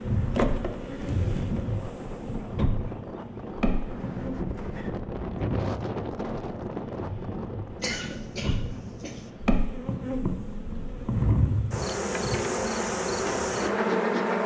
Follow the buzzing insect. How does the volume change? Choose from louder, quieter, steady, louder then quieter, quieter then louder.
quieter then louder.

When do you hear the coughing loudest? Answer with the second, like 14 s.
8 s.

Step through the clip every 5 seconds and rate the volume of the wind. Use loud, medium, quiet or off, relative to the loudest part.
loud, loud, off.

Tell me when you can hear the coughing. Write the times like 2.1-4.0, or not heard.
7.8-9.2.